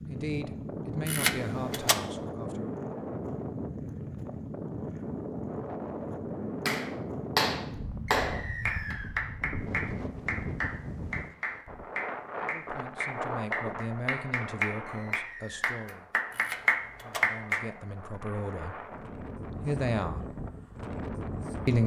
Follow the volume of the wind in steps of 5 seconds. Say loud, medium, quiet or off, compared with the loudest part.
loud, loud, loud, medium, loud.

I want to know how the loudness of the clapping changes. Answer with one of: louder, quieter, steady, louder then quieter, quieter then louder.
quieter then louder.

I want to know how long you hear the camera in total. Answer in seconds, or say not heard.
2 s.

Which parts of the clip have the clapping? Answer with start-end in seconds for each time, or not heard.
6.7-17.6.